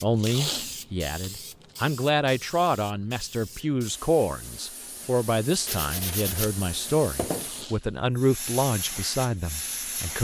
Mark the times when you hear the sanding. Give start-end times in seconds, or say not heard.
5.7-7.7.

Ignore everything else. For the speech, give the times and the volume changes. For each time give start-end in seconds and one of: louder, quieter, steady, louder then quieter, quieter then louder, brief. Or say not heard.
0.0-10.1 steady.